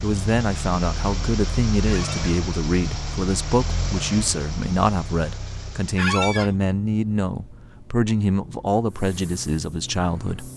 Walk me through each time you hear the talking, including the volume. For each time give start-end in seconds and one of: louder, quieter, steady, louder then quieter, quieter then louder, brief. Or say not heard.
0.0-10.5 steady.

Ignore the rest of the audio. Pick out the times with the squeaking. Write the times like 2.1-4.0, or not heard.
1.9-2.4, 6.0-6.5.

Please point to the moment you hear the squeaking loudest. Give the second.
6 s.